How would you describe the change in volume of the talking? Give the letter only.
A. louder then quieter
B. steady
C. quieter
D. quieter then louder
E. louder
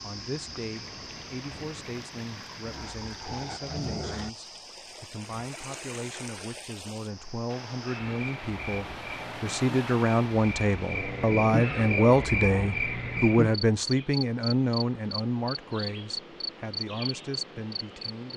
A.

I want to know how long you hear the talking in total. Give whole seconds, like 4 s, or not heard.
18 s.